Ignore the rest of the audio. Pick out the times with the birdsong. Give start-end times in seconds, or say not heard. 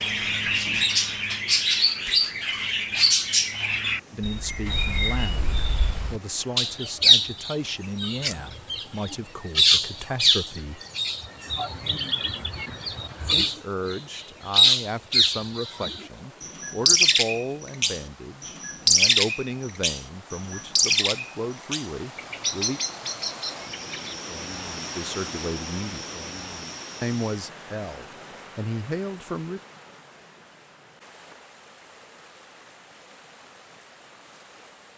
0.0-24.1.